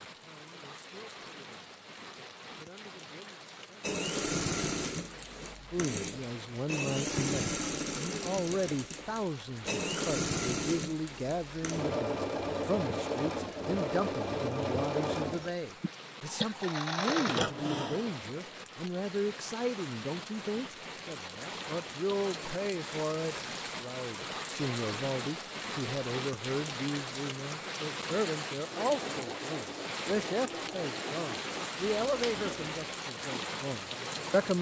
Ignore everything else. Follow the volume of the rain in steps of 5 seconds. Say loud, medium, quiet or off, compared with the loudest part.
medium, medium, medium, medium, loud, loud, loud.